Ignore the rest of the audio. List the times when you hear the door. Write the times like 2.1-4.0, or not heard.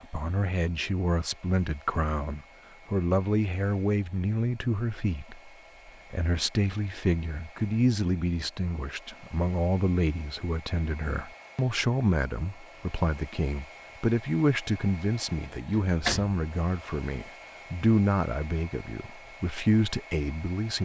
15.4-16.4.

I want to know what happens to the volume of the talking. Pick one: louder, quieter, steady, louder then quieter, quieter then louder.
steady.